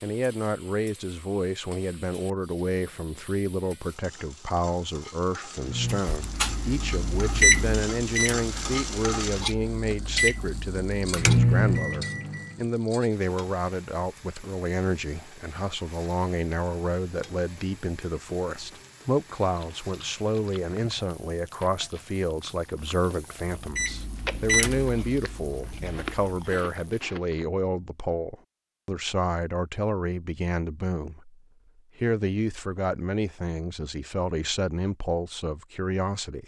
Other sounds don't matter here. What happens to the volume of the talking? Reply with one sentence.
The volume of the talking stays about the same.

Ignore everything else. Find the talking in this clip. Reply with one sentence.
The talking can be heard from 0.0 to 36.4 s.